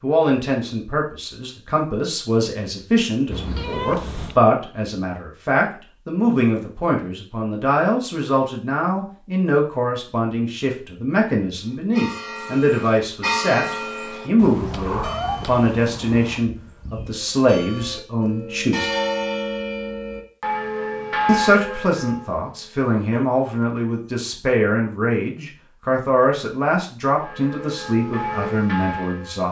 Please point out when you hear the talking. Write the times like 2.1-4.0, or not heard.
0.0-18.9, 21.2-29.4.